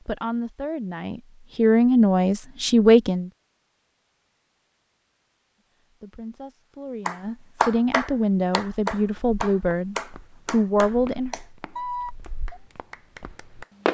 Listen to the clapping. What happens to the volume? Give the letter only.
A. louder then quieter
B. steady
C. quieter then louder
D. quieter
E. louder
D.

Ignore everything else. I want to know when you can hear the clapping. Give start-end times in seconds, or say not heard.
7.0-13.7.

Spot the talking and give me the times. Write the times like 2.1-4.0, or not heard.
0.1-3.3, 6.0-11.3.